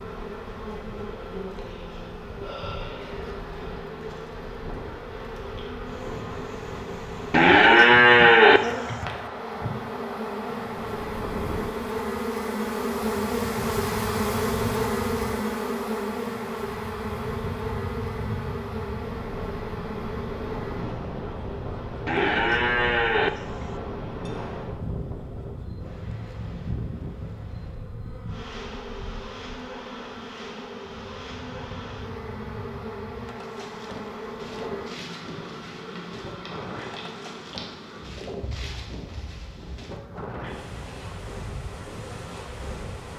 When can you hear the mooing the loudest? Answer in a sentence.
The volume of the mooing peaks at 8 seconds.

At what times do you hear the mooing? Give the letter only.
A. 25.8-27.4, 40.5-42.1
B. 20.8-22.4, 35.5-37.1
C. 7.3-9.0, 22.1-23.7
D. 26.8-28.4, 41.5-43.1
C.